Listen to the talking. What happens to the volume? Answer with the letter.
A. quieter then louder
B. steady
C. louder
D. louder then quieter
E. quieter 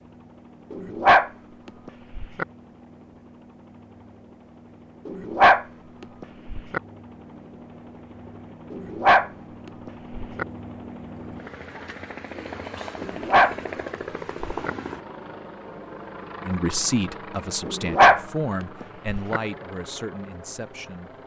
E.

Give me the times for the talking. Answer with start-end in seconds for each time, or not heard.
16.4-21.2.